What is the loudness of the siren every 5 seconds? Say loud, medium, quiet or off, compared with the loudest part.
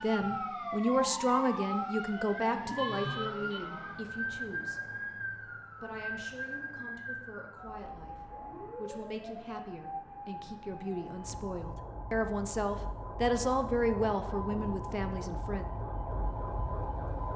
loud, medium, medium, loud.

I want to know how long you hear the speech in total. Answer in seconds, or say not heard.
14 s.